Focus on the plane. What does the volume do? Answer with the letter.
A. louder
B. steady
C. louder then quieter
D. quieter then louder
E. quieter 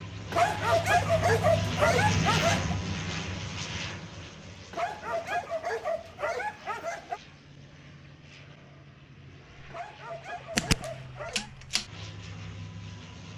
D.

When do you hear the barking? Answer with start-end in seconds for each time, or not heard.
0.3-2.8, 4.7-7.2, 9.7-11.5.